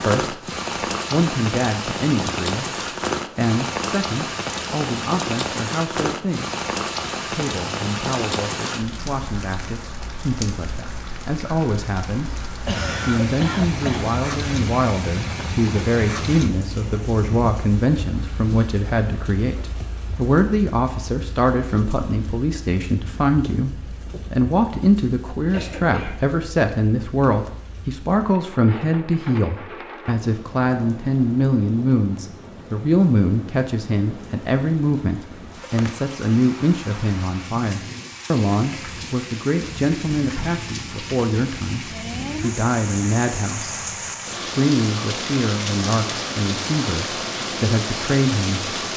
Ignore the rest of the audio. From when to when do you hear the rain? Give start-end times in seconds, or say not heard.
0.0-48.9.